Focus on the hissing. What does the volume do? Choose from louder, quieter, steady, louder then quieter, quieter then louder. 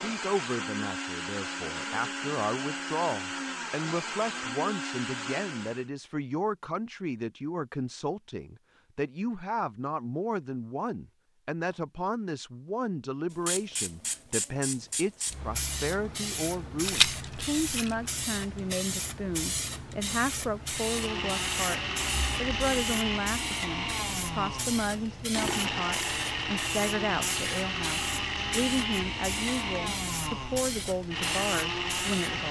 steady.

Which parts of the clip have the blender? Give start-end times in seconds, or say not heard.
0.0-5.8, 20.6-32.4.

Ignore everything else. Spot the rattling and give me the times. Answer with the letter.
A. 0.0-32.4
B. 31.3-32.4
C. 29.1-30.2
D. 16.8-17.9
D.